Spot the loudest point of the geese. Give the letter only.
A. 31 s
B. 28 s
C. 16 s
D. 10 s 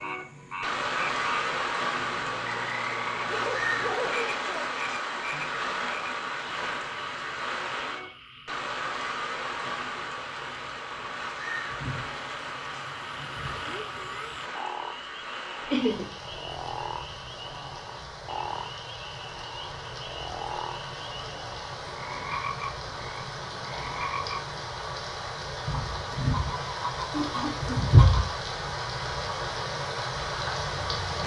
B.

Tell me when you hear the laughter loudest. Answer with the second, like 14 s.
16 s.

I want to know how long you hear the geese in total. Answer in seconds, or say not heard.
3 s.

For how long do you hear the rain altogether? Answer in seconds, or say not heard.
31 s.